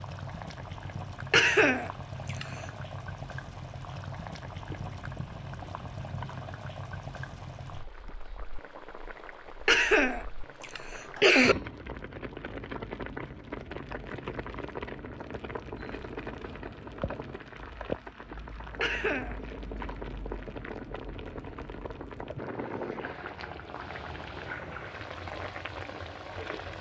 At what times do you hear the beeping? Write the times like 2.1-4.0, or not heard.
not heard.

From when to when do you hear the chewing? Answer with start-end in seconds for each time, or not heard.
4.7-6.4, 18.2-20.0.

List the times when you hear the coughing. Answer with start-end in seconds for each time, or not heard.
1.3-2.6, 9.7-11.6, 18.8-19.4.